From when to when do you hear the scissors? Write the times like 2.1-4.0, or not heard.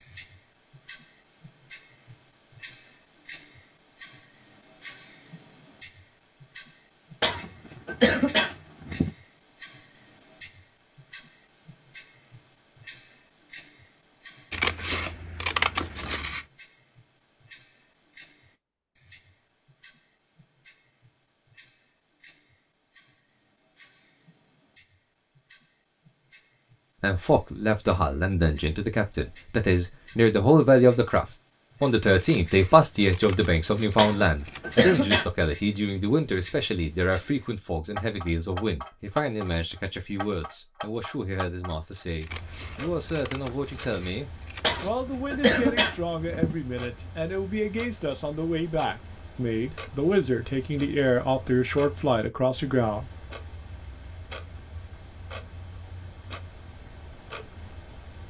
14.5-16.4, 32.1-34.8, 42.2-44.9.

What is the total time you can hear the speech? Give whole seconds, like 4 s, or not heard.
26 s.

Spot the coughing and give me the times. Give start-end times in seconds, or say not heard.
7.2-9.1, 34.0-35.2, 44.6-46.5.